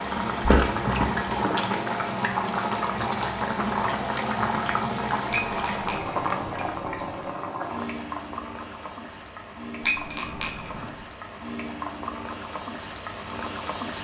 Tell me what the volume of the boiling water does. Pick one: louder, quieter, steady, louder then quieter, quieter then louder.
quieter.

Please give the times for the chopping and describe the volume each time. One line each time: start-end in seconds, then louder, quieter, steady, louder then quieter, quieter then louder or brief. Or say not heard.
not heard.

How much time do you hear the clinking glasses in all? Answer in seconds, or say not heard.
4 s.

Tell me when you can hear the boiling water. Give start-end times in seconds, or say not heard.
0.0-13.9.